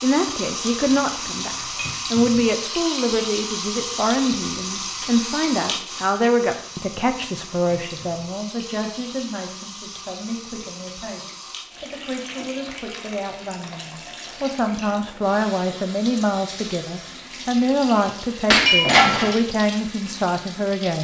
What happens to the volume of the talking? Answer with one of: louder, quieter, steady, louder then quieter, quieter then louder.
quieter then louder.